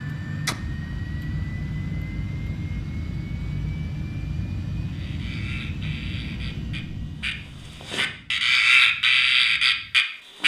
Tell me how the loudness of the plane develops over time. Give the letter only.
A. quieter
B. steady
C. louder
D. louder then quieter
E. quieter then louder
A.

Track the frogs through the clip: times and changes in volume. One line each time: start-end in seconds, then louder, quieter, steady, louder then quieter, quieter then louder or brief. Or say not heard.
4.8-10.4 louder.